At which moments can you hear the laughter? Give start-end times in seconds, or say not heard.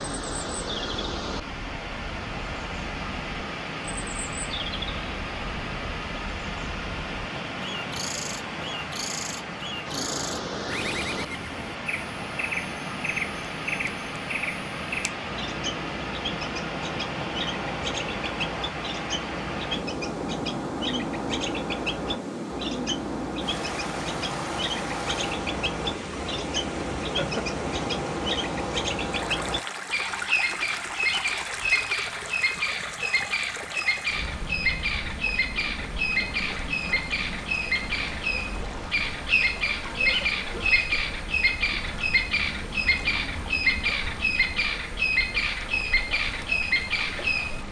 27.0-27.6.